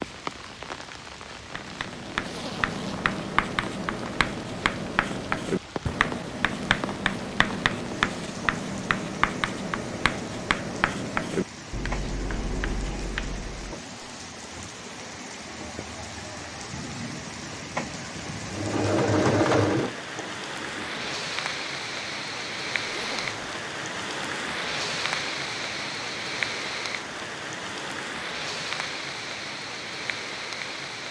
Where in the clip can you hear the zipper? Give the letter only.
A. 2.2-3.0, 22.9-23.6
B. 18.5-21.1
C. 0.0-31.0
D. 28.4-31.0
A.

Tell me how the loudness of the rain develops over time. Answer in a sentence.
The loudness of the rain goes up.